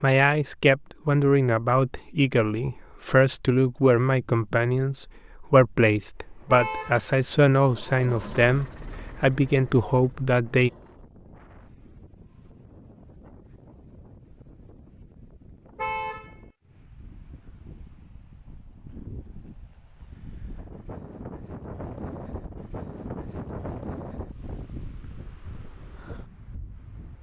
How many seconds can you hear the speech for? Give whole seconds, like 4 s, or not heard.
11 s.